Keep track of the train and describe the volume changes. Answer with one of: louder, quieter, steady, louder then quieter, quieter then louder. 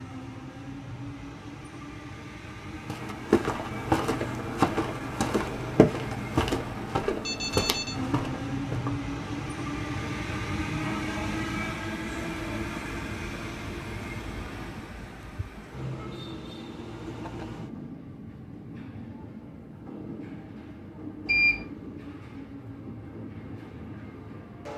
louder then quieter.